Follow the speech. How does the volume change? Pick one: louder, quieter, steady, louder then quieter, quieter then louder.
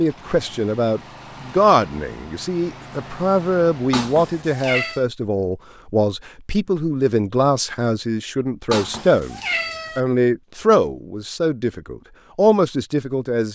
steady.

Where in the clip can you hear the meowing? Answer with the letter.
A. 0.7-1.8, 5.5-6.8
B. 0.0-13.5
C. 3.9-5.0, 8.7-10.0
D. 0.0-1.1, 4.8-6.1
C.